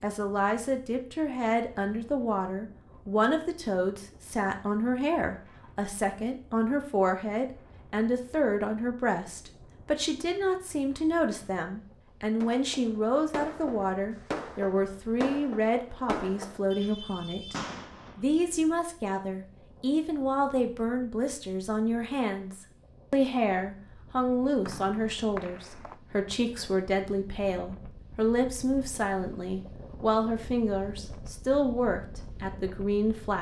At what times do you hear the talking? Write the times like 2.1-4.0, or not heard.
0.0-17.6, 18.1-33.3.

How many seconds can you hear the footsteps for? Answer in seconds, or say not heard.
not heard.